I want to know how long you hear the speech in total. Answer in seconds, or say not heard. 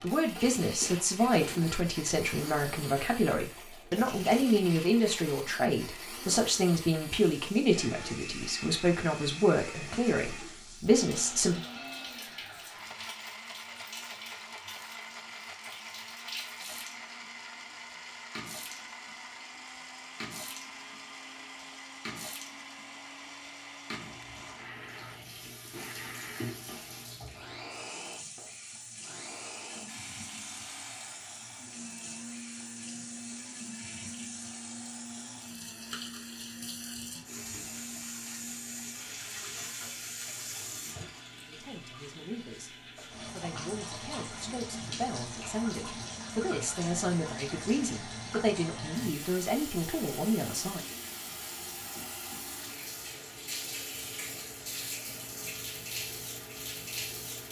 21 s.